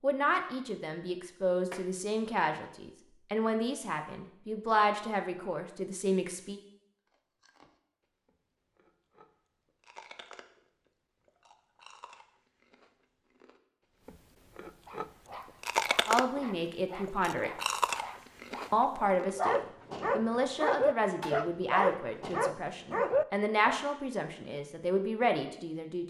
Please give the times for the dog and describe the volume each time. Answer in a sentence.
You can hear the dog from 14.8 to 23.8 s, getting louder.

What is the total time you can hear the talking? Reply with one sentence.
You can hear the talking for 15 seconds altogether.